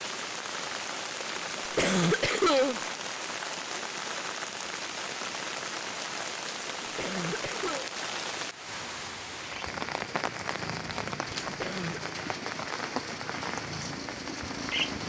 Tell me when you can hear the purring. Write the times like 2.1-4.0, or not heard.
9.7-15.0.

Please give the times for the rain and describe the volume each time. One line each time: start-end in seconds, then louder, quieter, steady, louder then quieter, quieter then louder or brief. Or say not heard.
0.0-15.0 steady.